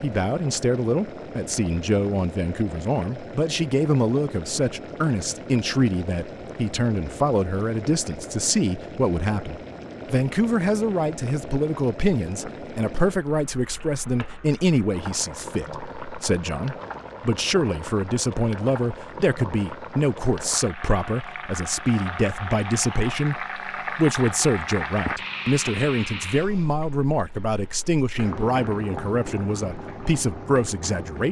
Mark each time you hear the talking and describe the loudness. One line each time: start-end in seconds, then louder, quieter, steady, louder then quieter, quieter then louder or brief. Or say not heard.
0.0-31.2 steady.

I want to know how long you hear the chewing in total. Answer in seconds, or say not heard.
not heard.